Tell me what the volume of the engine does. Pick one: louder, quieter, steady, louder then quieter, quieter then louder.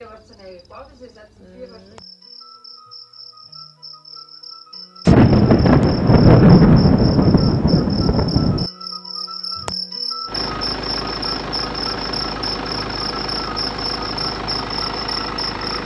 steady.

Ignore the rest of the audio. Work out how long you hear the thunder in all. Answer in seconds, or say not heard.
4 s.